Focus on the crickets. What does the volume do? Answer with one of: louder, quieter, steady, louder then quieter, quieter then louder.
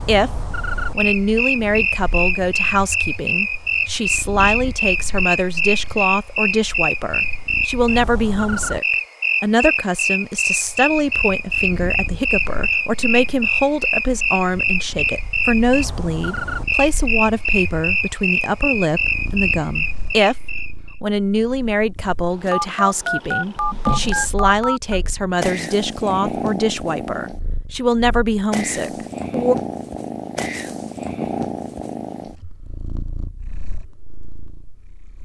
steady.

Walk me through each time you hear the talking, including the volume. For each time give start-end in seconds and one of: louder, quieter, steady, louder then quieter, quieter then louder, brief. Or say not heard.
0.1-29.6 steady.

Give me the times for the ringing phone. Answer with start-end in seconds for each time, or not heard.
22.5-25.0.